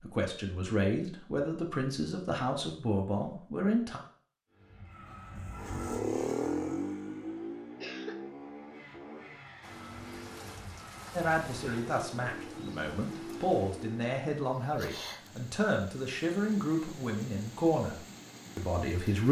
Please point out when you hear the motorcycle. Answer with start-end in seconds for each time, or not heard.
4.5-14.2.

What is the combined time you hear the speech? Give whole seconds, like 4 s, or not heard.
12 s.